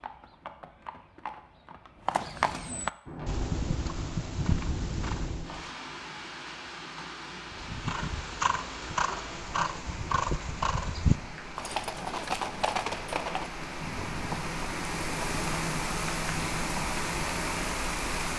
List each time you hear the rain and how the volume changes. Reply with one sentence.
You can hear the rain from 3.0 to 18.3 s, getting louder.